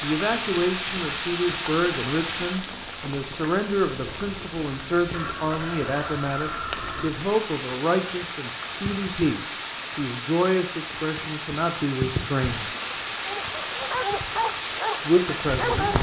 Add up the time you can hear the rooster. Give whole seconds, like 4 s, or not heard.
2 s.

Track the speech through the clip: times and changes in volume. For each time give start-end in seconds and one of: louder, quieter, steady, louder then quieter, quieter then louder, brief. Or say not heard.
0.0-12.7 steady
14.9-15.9 brief.